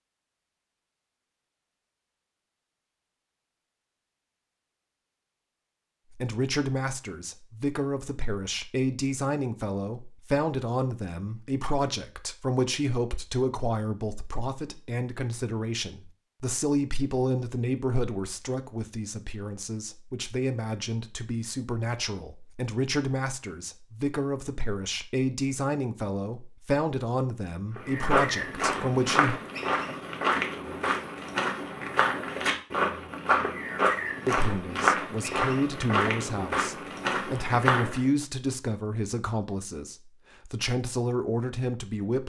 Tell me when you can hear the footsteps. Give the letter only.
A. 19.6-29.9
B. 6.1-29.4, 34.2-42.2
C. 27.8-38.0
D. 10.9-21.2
C.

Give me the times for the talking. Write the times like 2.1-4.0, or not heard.
6.1-29.4, 34.2-42.2.